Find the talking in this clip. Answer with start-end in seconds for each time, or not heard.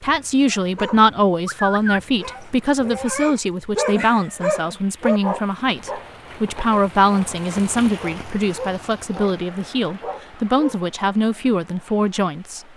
0.0-12.6.